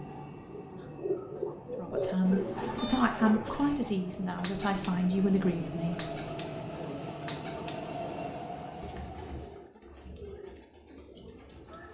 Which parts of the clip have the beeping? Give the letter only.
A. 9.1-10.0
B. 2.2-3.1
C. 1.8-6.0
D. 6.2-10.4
B.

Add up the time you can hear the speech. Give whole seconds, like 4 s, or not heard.
4 s.